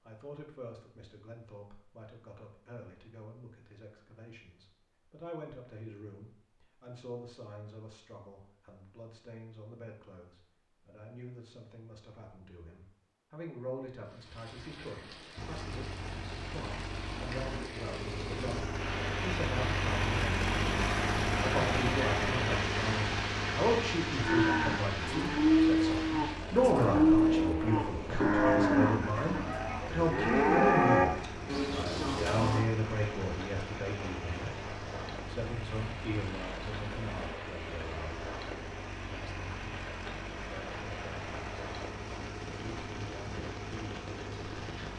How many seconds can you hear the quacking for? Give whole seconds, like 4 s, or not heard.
not heard.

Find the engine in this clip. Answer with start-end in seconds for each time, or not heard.
15.3-44.9.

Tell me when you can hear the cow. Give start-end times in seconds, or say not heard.
24.2-32.6.